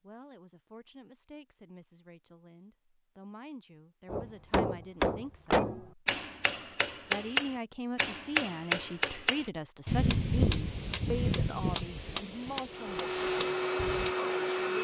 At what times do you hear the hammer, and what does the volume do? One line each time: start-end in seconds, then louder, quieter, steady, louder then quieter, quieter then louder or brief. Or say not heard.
4.0-14.1 quieter.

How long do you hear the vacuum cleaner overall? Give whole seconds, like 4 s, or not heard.
2 s.